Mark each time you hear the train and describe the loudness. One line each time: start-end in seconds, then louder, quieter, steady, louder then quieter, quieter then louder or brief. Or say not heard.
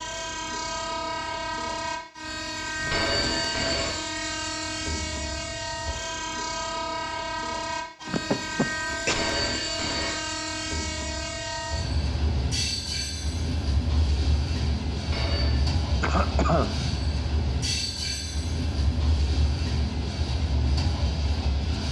0.0-21.8 steady.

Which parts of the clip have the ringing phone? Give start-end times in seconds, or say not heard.
2.8-4.0, 9.1-10.2, 15.0-15.7.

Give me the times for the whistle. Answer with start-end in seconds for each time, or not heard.
not heard.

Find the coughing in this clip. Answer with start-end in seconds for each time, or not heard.
8.0-9.2, 16.0-16.7.